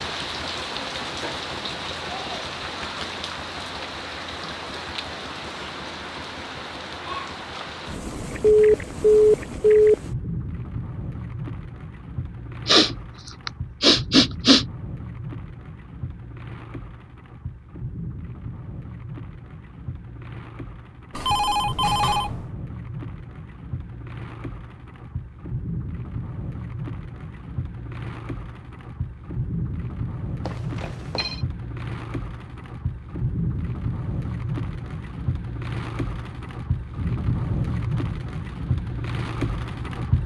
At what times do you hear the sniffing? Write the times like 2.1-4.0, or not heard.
12.7-14.7.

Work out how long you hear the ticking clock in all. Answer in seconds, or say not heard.
not heard.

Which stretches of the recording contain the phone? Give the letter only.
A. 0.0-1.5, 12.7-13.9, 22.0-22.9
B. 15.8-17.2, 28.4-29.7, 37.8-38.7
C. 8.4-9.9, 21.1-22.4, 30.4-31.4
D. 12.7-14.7
C.